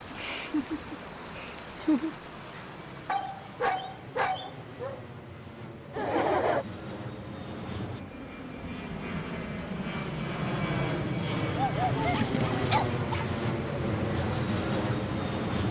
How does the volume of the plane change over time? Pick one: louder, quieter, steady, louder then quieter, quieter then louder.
louder.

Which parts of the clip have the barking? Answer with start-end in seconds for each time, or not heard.
3.0-5.0, 11.6-13.2.